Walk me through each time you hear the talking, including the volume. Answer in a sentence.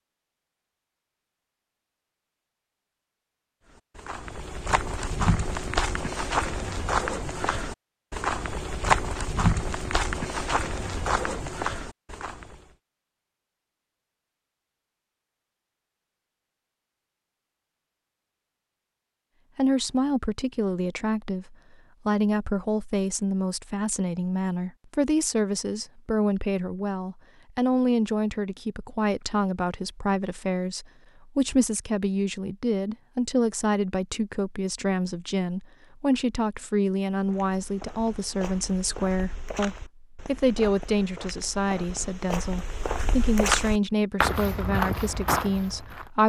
The talking can be heard from 19.6 to 46.2 s, at a steady volume.